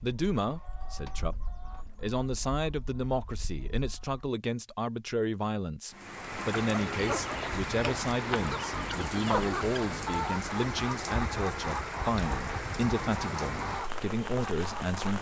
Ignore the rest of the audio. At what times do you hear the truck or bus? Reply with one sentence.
The truck or bus can't be heard in this clip.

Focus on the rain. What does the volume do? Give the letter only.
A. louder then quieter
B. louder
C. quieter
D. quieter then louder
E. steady
E.